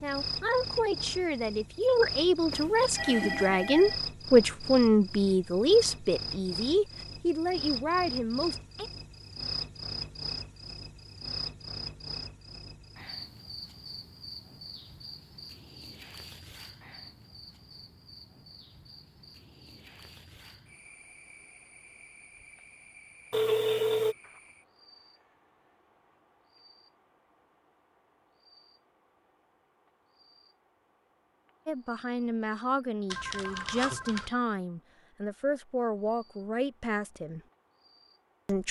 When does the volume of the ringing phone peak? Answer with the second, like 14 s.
24 s.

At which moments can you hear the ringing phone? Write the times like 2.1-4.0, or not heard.
2.5-4.0, 23.3-24.1, 33.1-34.3.